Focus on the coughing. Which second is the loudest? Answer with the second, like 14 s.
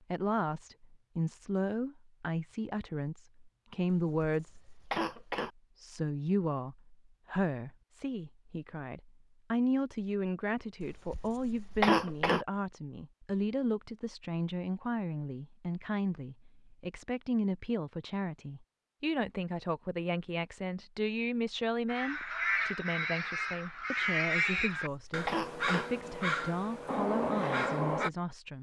12 s.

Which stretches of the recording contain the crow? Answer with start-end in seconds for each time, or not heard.
21.9-28.1.